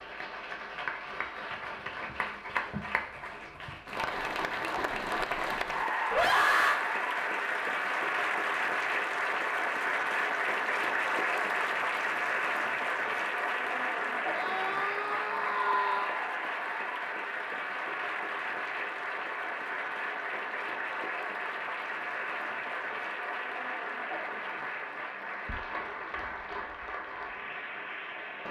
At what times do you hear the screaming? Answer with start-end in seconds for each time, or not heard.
6.1-6.8, 14.3-16.2.